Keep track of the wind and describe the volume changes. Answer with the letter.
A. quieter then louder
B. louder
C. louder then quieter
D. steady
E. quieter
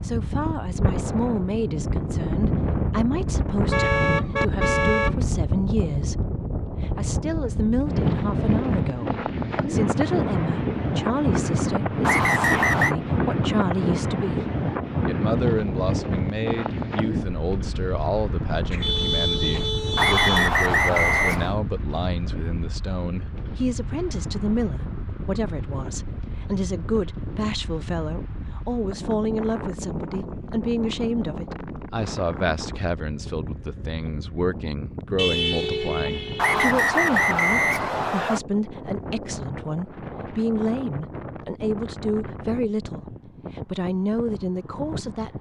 E.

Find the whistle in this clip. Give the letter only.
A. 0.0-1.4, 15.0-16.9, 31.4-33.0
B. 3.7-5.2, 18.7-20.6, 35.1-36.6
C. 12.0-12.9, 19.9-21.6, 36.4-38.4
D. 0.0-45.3
C.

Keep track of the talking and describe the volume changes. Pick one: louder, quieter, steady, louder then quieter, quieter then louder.
steady.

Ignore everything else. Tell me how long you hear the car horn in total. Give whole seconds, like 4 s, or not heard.
5 s.